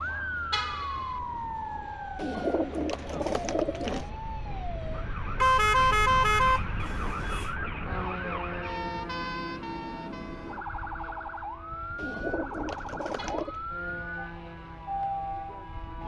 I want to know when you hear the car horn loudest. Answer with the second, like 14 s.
6 s.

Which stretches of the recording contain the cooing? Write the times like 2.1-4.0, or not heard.
2.1-4.1, 11.9-13.6.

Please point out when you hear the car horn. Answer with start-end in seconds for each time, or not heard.
0.5-1.1, 5.4-7.5, 13.2-13.8.